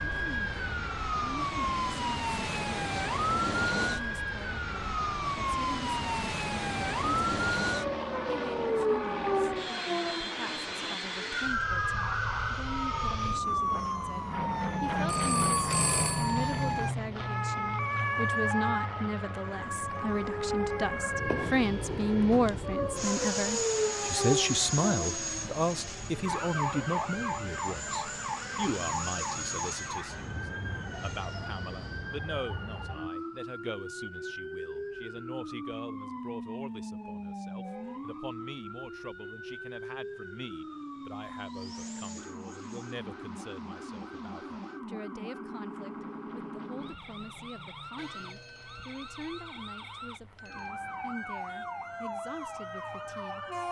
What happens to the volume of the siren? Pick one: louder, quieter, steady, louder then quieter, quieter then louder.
quieter.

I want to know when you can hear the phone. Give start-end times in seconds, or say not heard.
15.1-16.9, 48.0-50.8.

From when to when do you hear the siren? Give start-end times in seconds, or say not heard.
0.0-53.6.